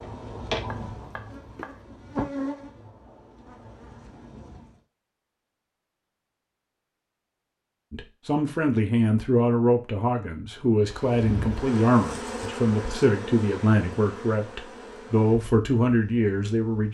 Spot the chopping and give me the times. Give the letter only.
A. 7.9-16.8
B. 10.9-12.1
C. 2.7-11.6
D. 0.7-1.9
D.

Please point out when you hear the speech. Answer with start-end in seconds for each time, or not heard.
7.9-16.8.